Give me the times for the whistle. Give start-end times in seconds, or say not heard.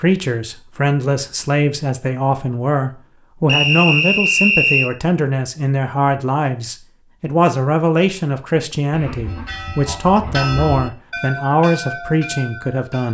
3.5-4.9.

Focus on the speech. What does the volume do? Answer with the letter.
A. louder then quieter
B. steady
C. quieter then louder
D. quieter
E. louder
B.